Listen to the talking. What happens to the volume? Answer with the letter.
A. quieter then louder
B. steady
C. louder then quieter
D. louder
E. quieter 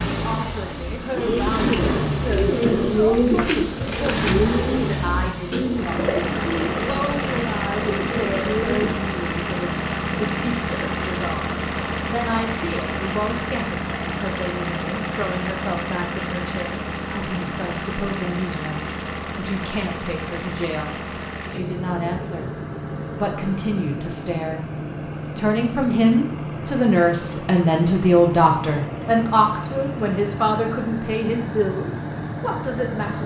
D.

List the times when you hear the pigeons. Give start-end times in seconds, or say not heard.
1.1-9.0.